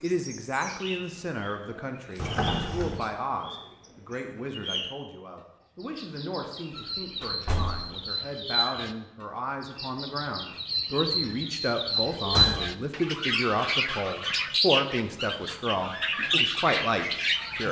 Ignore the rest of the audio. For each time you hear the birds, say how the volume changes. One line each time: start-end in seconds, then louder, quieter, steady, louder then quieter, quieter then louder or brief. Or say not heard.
0.0-17.6 louder.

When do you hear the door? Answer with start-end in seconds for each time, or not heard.
2.1-3.0, 6.8-8.1, 12.2-12.8.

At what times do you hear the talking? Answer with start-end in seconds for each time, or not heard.
0.0-17.6.